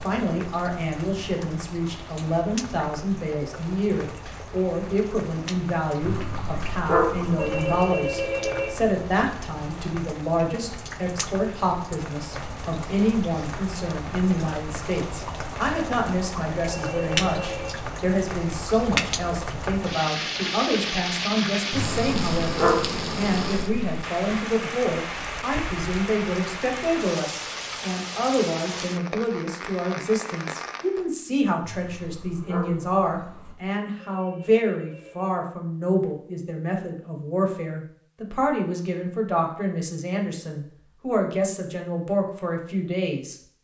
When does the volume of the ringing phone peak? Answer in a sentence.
The volume of the ringing phone peaks at 8 seconds.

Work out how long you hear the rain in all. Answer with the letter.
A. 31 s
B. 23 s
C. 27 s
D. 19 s
A.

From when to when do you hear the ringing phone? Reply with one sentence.
You can hear the ringing phone from 7.2 to 8.7 s, from 16.6 to 17.8 s and from 34.0 to 35.3 s.